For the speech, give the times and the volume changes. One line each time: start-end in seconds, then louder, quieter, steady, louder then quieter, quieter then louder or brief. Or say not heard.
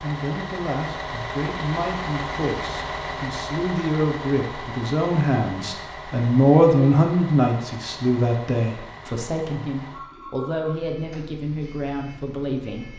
0.0-12.9 louder then quieter.